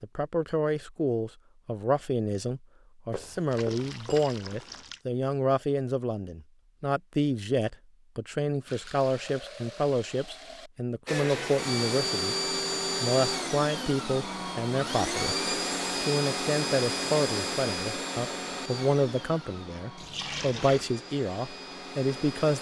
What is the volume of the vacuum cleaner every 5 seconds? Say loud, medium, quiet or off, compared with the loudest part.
off, off, loud, loud, medium.